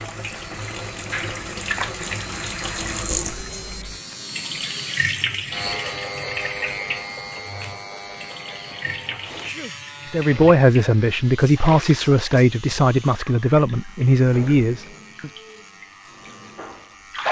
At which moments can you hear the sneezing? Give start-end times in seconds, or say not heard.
9.1-9.8.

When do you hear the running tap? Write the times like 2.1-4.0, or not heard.
0.0-17.2.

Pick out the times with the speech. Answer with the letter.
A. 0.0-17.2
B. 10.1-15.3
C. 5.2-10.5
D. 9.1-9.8
B.